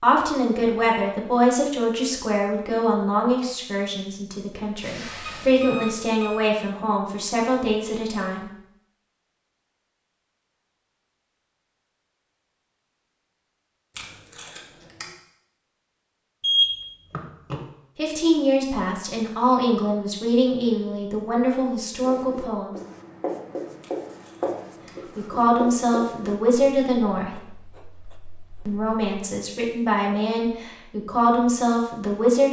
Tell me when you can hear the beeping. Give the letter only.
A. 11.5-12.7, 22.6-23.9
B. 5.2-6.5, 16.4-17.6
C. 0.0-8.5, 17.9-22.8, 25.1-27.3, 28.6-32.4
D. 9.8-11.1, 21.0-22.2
B.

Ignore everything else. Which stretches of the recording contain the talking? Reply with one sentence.
The talking can be heard from 0.0 to 8.5 s, from 17.9 to 22.8 s, from 25.1 to 27.3 s and from 28.6 to 32.4 s.